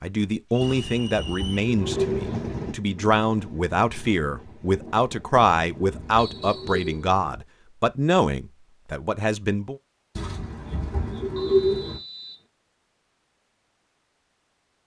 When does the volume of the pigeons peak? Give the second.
12 s.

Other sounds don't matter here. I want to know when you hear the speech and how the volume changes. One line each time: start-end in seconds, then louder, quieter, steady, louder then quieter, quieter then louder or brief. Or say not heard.
0.0-9.8 steady.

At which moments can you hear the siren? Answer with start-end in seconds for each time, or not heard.
not heard.